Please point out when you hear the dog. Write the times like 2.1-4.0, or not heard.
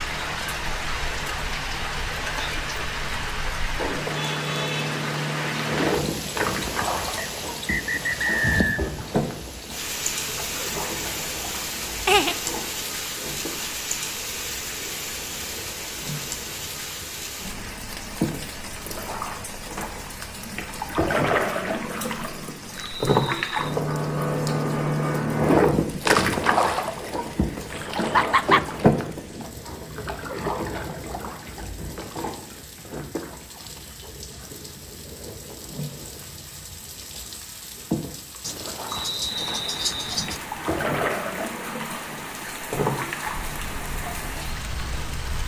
not heard.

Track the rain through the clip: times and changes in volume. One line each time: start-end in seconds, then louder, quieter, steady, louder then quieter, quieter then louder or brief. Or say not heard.
0.0-45.4 quieter then louder.